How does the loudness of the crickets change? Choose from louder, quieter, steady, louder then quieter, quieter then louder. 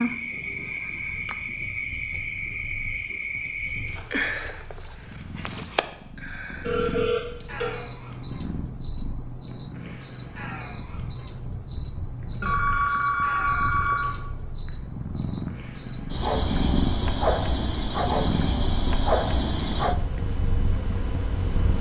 steady.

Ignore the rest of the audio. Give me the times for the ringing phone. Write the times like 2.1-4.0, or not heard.
6.7-7.8, 12.4-14.2.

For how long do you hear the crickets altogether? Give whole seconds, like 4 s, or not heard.
22 s.